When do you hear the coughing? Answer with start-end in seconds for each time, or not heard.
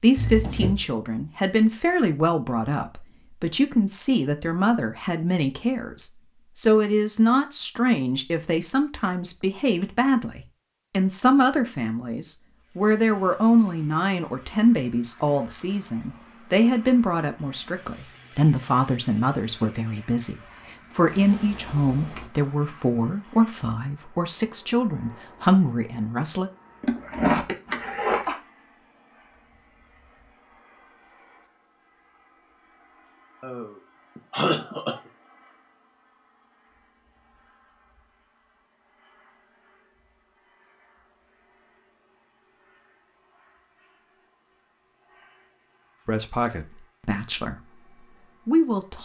0.1-0.8, 26.8-28.4, 33.4-35.0.